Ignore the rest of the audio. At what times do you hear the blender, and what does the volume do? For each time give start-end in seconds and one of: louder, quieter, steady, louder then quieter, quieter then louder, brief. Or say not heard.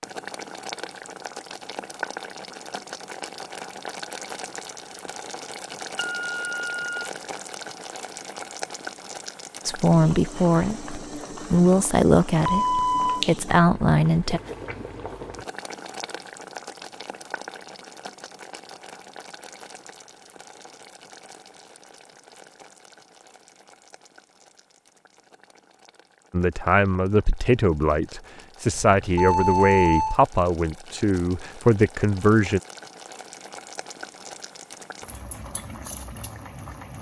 not heard.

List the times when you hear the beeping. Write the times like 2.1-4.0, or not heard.
6.0-7.1, 12.4-13.2, 28.9-30.2.